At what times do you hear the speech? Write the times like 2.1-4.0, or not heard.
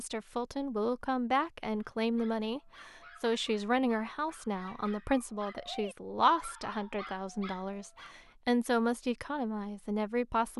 0.0-10.5.